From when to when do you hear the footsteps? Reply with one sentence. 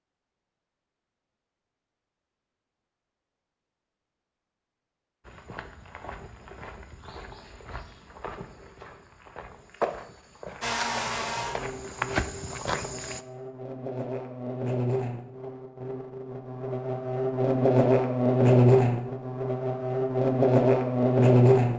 You can hear the footsteps from 5.2 to 13.2 s.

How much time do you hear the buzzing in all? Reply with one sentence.
The buzzing can be heard for 11 seconds in total.